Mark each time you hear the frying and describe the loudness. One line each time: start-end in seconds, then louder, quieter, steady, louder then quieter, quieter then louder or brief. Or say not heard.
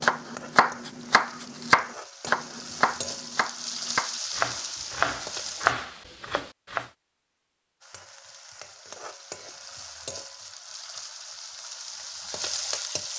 0.0-5.8 louder
7.8-13.1 louder.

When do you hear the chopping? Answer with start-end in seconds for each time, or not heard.
0.0-6.8.